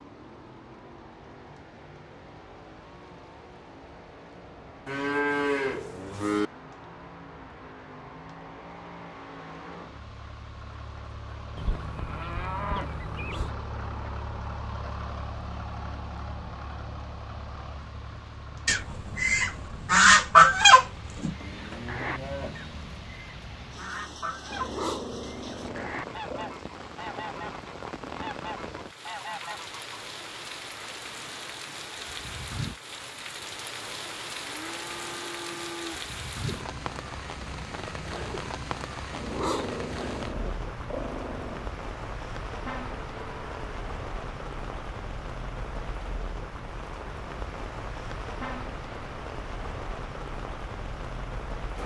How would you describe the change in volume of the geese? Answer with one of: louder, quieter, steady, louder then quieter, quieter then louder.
quieter.